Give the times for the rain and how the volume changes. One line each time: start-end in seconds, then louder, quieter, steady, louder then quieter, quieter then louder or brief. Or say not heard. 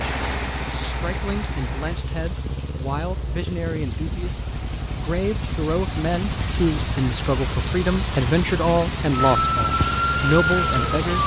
0.0-11.2 quieter then louder.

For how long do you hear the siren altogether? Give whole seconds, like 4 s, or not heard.
2 s.